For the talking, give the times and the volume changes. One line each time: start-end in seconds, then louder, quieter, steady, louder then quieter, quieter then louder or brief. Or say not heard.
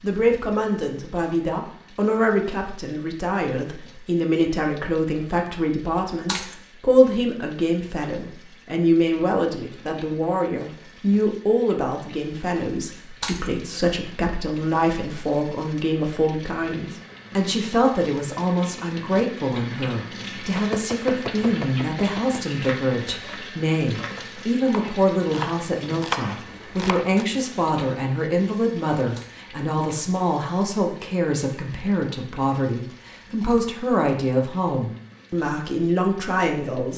0.0-36.9 steady.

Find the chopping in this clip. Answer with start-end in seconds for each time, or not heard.
20.6-27.2.